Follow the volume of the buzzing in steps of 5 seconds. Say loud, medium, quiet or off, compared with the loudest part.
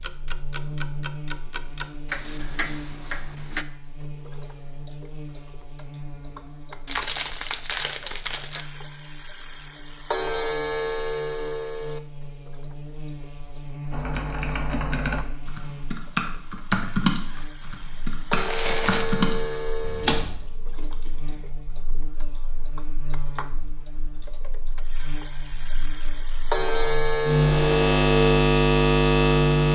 quiet, quiet, quiet, quiet, quiet, loud.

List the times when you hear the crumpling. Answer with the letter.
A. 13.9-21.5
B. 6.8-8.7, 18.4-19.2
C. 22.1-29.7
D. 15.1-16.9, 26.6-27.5
B.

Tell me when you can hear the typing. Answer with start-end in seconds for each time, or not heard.
13.9-21.5.